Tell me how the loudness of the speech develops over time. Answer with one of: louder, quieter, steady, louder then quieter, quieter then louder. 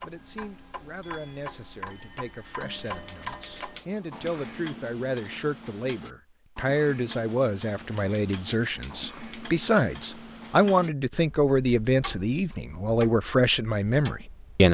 louder.